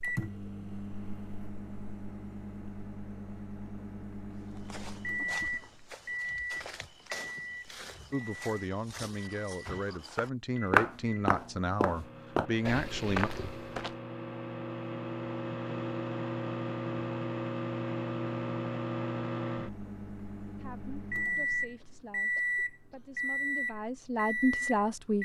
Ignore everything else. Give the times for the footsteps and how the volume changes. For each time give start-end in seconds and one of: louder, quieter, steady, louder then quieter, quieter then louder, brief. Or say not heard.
4.5-13.9 louder then quieter.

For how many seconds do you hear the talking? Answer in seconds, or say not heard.
10 s.